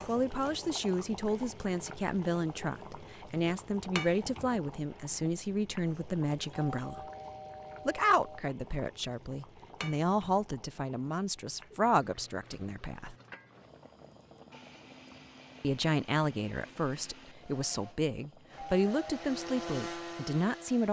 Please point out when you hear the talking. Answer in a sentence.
You can hear the talking from 0.1 to 7.0 s, from 7.8 to 13.2 s and from 15.6 to 20.8 s.